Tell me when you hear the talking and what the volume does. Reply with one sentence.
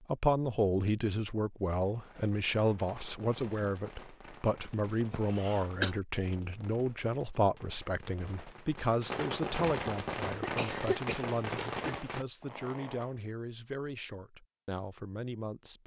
You can hear the talking from 0.1 to 15.8 s, getting quieter.